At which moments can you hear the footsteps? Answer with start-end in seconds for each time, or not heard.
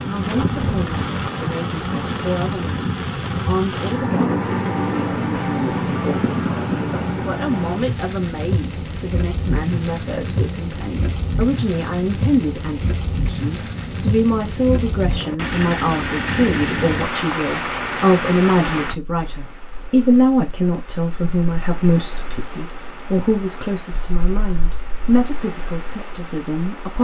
not heard.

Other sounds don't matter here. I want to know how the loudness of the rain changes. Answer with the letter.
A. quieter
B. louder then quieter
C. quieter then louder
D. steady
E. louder
A.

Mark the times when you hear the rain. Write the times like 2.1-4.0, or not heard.
0.0-26.9.